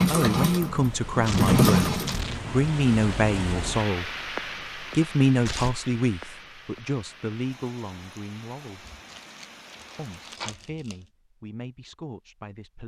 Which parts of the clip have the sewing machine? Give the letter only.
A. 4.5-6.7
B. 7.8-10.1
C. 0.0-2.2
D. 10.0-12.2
C.